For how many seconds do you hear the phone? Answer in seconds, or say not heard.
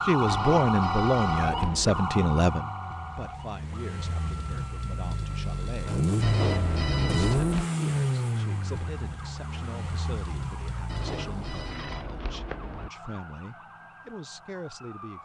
5 s.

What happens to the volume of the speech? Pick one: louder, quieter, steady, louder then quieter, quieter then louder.
quieter.